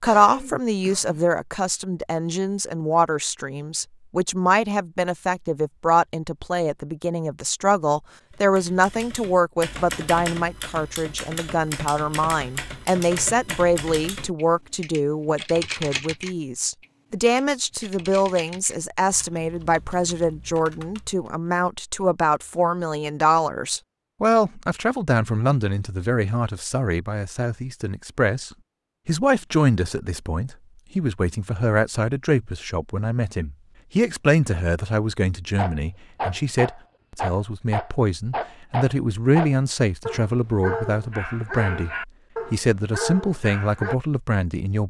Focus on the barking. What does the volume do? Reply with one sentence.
The loudness of the barking stays about the same.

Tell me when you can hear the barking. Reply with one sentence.
You can hear the barking from 35.5 to 44.0 s.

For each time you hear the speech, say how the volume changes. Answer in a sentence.
The speech can be heard from 0.0 to 44.8 s, at a steady volume.